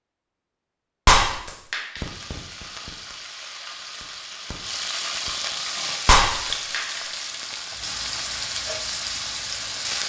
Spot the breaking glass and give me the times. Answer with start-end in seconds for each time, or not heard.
1.1-2.0, 6.0-7.0.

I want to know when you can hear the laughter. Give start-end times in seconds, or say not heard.
not heard.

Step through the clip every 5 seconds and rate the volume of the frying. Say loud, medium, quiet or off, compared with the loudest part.
medium, loud.